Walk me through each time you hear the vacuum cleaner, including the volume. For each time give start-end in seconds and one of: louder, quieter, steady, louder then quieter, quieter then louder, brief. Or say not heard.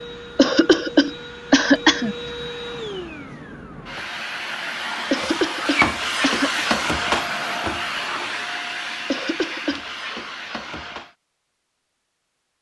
0.0-11.2 louder then quieter.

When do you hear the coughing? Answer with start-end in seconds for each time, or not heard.
0.3-2.1, 5.1-6.7, 9.1-9.8.